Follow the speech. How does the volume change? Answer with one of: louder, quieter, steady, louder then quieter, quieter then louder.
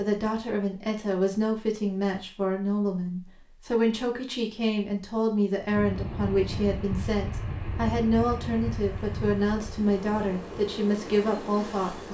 steady.